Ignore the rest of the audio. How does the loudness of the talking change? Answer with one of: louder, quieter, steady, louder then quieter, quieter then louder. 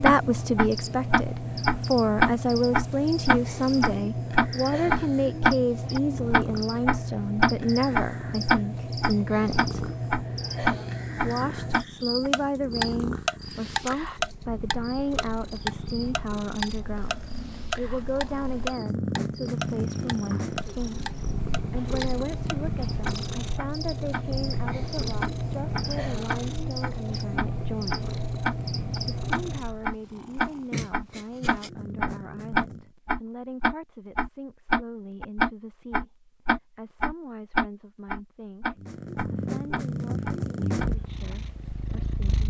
quieter.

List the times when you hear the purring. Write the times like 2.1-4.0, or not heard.
0.1-33.0, 38.8-42.4.